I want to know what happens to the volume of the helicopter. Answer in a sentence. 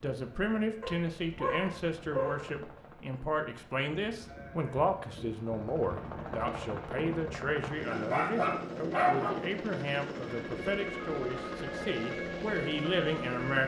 The loudness of the helicopter goes up.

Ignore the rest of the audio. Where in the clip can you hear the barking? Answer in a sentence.
You can hear the barking from 0.8 to 2.5 s and from 7.9 to 9.4 s.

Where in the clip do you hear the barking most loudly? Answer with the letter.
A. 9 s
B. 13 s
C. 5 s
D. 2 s
A.